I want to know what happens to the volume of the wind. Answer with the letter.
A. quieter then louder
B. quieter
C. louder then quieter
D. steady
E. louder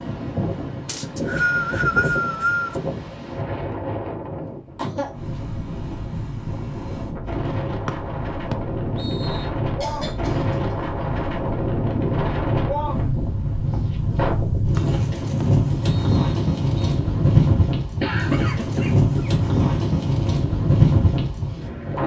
E.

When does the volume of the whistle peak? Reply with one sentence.
The loudest moment of the whistle is at 2 seconds.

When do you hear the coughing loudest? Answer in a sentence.
The volume of the coughing peaks at 18 seconds.